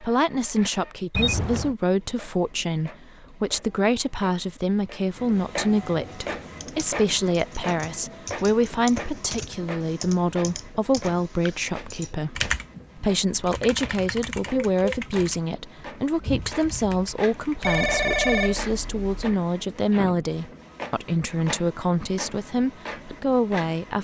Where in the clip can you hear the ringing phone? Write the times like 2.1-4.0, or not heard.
1.1-1.8, 17.6-19.4.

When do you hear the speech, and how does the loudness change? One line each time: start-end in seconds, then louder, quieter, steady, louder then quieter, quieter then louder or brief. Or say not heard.
0.0-23.9 steady.